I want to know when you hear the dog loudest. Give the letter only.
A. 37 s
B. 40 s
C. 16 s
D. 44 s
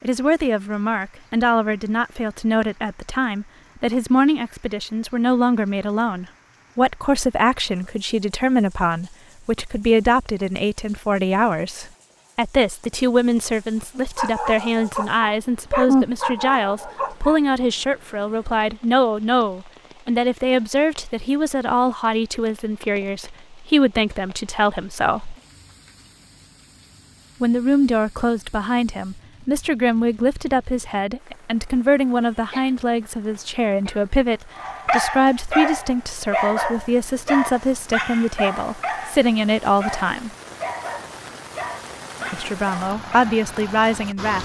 C.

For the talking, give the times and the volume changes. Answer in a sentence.
The talking can be heard from 0.0 to 25.4 s, at a steady volume; from 27.4 to 40.3 s, at a steady volume; and briefly from 42.3 to 44.4 s.